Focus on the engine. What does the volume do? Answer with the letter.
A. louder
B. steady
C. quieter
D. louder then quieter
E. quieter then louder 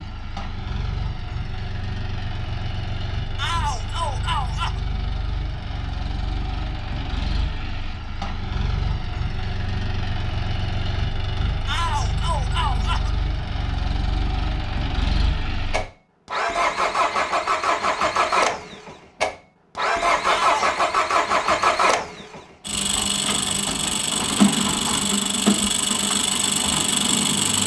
A.